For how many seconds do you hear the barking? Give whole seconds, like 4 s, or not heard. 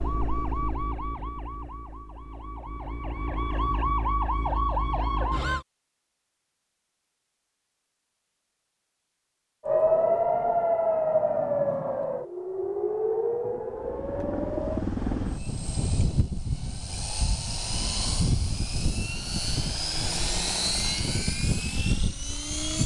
not heard.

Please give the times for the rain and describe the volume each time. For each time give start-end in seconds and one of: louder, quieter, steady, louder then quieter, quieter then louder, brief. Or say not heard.
not heard.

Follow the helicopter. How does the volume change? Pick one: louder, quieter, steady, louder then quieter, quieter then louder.
steady.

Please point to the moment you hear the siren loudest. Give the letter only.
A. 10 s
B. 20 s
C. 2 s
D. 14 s
A.